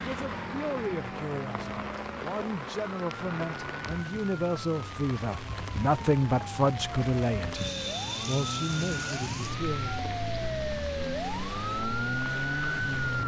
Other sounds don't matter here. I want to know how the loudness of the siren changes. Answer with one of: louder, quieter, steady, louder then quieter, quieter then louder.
louder.